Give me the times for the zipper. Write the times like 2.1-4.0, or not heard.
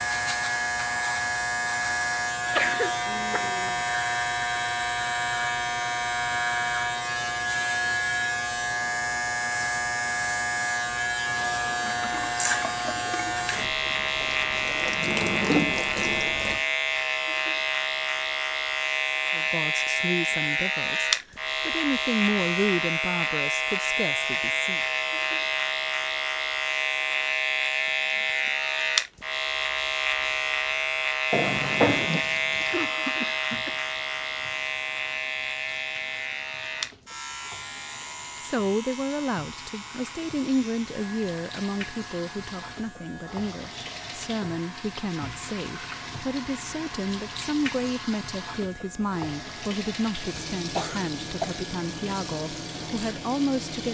not heard.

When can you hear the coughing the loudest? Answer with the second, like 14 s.
3 s.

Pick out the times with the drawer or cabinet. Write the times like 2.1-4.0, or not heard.
14.2-15.8, 31.3-32.2.